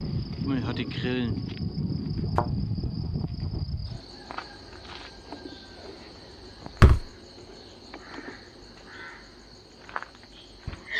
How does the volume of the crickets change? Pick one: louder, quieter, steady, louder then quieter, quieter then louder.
quieter.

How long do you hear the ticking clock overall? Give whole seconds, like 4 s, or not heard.
not heard.